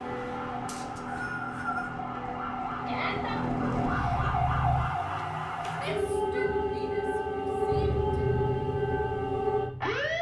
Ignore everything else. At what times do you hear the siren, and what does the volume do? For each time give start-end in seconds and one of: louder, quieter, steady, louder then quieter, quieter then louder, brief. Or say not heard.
0.0-10.1 louder.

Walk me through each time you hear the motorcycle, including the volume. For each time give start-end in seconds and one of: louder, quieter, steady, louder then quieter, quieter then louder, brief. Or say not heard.
0.0-4.9 louder
7.7-10.1 brief.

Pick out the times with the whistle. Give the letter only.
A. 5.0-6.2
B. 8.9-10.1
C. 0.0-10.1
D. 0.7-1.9
D.